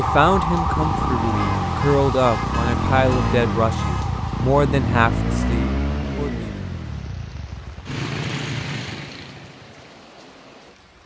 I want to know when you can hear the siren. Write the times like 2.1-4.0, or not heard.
0.0-5.5.